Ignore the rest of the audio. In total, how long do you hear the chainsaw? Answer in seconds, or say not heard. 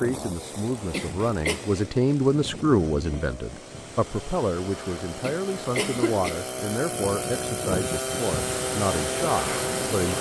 10 s.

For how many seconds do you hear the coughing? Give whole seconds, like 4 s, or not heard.
2 s.